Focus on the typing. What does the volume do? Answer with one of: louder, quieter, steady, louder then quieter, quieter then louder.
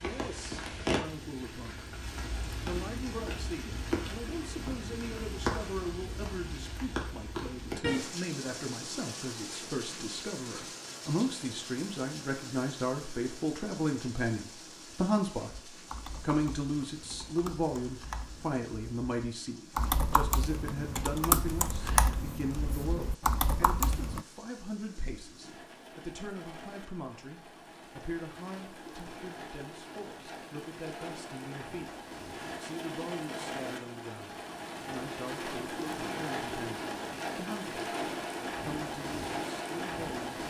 louder.